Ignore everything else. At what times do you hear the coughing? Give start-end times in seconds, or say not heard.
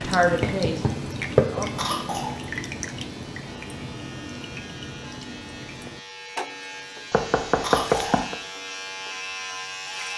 1.8-2.4, 7.6-8.2.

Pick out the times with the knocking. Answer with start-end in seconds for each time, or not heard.
0.4-1.6, 7.1-8.3.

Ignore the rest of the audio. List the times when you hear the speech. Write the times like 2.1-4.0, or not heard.
0.0-2.1.